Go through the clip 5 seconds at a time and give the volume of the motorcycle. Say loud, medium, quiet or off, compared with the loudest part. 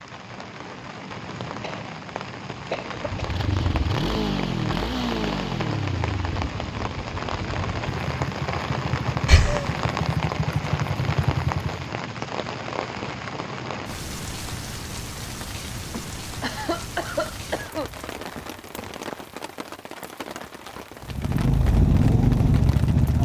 medium, medium, medium, off, loud.